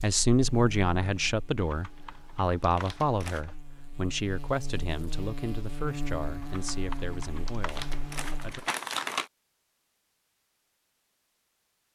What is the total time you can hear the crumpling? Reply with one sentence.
The crumpling can be heard for 2 seconds in total.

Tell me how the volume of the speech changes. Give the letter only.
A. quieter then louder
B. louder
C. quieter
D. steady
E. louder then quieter
C.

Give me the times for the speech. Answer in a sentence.
The speech can be heard from 0.0 to 8.6 s.